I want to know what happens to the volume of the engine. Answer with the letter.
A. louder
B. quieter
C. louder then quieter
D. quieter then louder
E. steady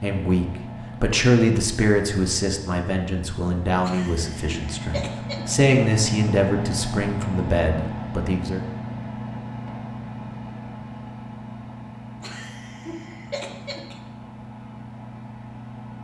C.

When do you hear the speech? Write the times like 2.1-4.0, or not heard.
0.0-8.6.